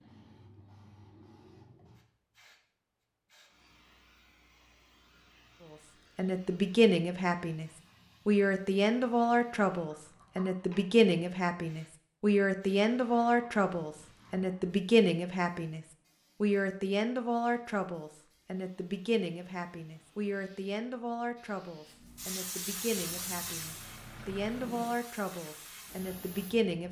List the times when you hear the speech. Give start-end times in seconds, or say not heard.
6.2-26.8.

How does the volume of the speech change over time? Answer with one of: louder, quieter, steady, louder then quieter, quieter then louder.
quieter.